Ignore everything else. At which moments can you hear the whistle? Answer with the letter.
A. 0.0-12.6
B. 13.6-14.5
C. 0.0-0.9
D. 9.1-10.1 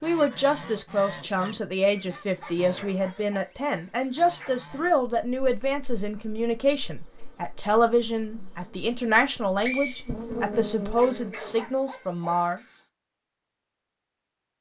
D.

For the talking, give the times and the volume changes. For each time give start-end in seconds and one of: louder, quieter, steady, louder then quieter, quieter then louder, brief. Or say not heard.
0.0-12.6 steady.